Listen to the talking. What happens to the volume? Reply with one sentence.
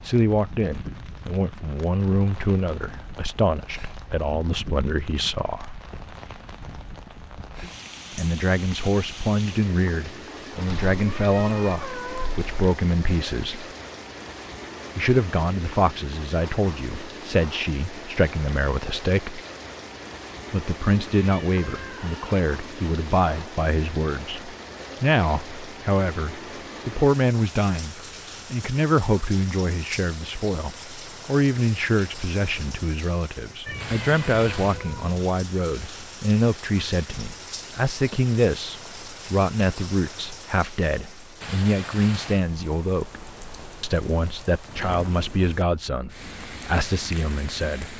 The volume of the talking stays about the same.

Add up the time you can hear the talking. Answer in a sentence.
The talking can be heard for 43 seconds in total.